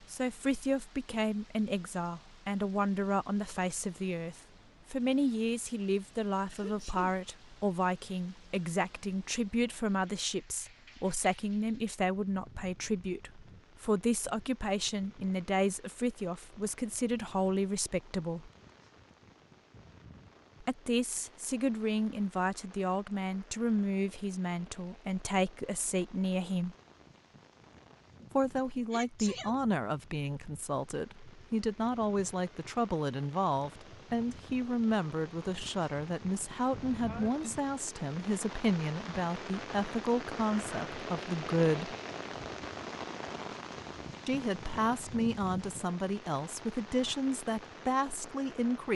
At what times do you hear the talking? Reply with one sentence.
You can hear the talking from 0.1 to 18.5 s, from 20.6 to 26.8 s, from 28.4 to 42.0 s and from 44.2 to 48.8 s.